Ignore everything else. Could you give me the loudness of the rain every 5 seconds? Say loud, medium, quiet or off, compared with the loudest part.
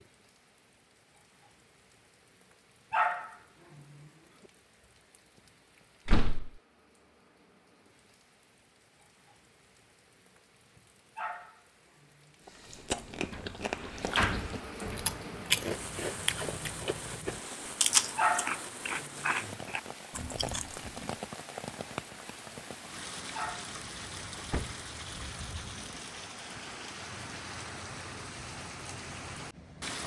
quiet, quiet, medium, loud, loud, loud.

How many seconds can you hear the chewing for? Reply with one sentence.
The chewing can be heard for 9 seconds in total.